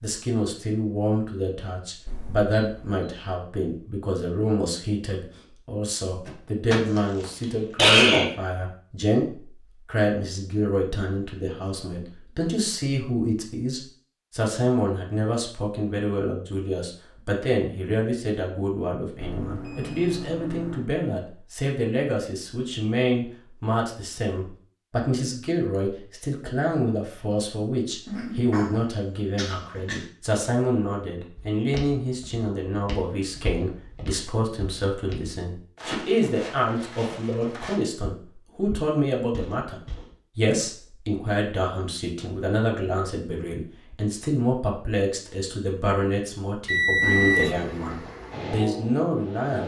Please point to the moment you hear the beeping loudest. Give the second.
47 s.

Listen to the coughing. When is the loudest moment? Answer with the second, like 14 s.
8 s.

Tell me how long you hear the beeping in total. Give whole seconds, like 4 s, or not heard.
4 s.